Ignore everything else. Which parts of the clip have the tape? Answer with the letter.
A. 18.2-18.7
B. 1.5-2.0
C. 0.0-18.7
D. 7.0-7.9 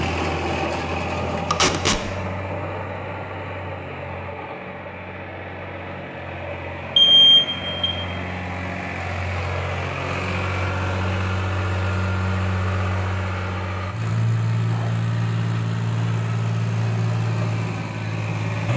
B.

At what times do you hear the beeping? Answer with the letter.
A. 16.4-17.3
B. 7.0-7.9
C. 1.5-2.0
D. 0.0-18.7
B.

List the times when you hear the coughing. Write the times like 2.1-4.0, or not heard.
not heard.